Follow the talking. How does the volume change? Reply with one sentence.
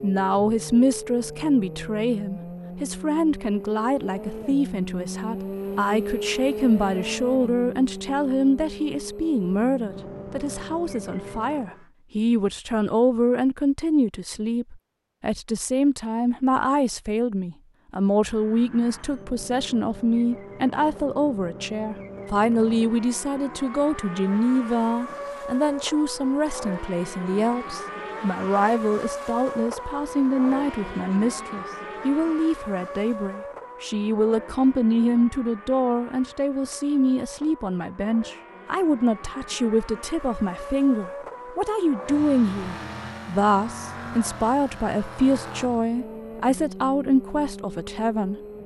The volume of the talking stays about the same.